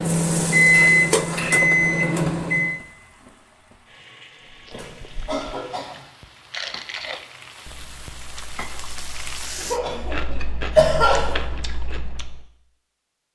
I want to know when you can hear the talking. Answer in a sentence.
You can't hear the talking here.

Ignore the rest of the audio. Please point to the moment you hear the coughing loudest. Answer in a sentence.
The volume of the coughing peaks at 11 seconds.